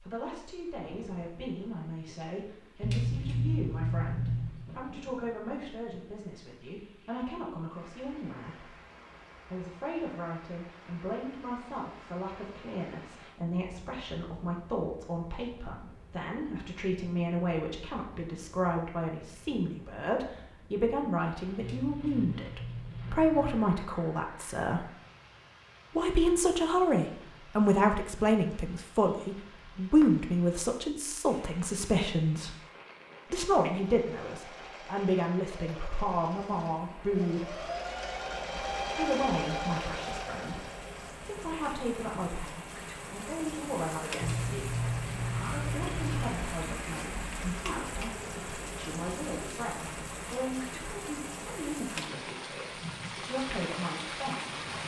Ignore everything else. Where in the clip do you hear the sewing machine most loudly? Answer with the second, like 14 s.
39 s.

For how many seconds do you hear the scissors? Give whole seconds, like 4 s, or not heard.
6 s.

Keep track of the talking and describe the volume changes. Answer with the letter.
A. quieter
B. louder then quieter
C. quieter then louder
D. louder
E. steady
B.